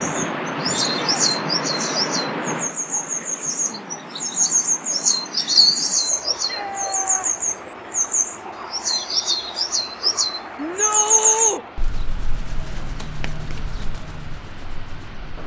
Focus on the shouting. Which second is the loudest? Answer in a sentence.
The loudest moment of the shouting is at 11 seconds.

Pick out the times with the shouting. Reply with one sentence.
You can hear the shouting from 0.8 to 1.2 s, from 6.3 to 7.3 s and from 10.6 to 11.7 s.